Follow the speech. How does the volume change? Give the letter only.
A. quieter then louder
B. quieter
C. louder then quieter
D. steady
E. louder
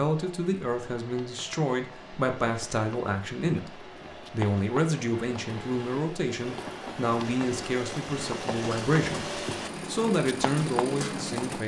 D.